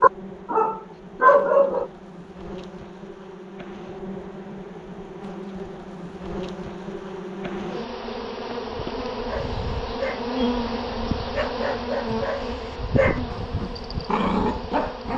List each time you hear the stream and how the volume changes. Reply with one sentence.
The stream can't be heard in this clip.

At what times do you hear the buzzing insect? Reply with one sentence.
The buzzing insect can be heard from 0.0 to 15.1 s.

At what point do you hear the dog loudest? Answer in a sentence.
The volume of the dog peaks at 1 second.